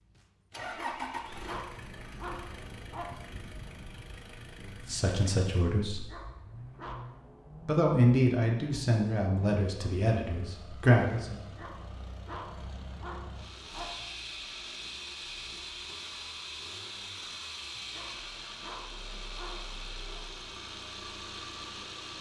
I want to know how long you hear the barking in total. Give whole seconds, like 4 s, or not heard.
9 s.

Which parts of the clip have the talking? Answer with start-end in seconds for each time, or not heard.
4.7-6.0, 7.7-11.3.